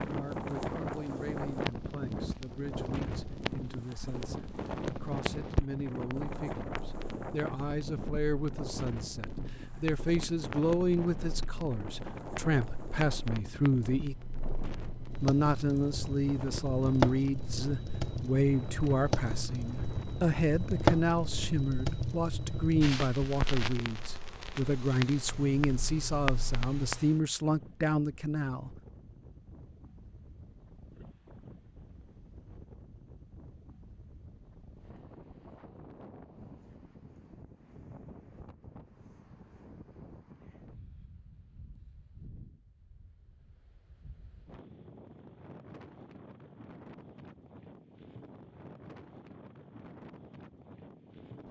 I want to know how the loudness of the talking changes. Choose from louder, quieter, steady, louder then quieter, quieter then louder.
louder.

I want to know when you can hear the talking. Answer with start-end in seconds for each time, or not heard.
0.1-14.2, 15.2-28.8.